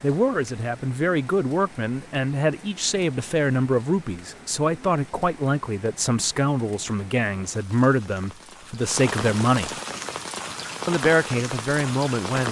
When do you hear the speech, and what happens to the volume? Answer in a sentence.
You can hear the speech from 0.0 to 9.8 s, at a steady volume; and briefly from 10.8 to 12.4 s.